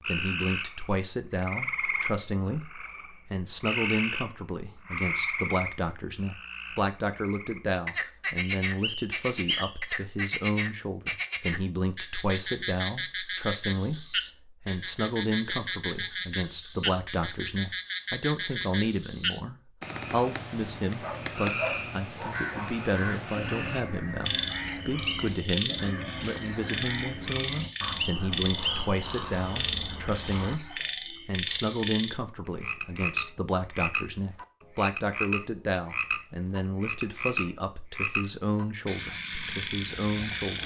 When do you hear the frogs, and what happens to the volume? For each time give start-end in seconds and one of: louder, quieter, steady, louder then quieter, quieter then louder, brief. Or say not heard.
0.0-40.6 steady.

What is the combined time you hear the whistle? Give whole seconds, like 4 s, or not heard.
3 s.